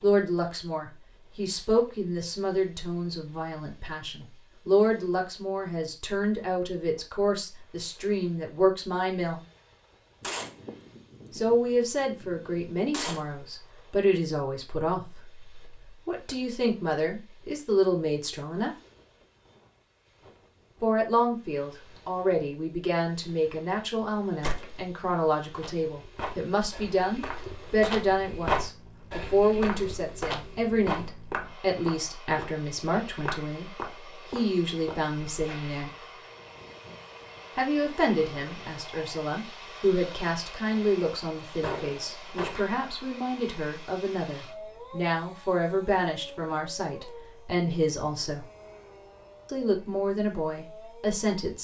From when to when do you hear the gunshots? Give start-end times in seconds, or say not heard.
10.2-13.2, 24.4-24.9, 41.6-42.9.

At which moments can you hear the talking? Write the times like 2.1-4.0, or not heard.
0.0-9.4, 11.3-18.8, 20.8-33.7, 34.3-35.9, 37.5-48.5, 49.5-51.6.